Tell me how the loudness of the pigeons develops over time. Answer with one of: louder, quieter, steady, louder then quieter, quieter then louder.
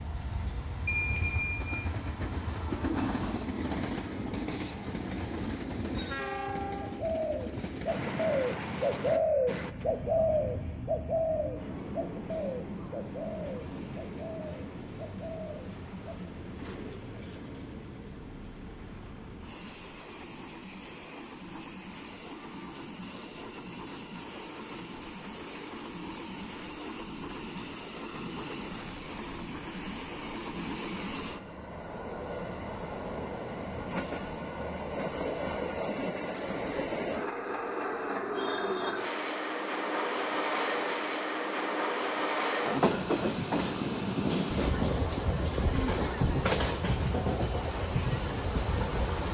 quieter.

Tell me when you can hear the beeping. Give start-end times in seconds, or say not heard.
0.8-1.7.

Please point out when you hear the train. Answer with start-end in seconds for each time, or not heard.
0.0-49.2.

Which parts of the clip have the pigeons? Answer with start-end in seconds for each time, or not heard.
7.0-17.1.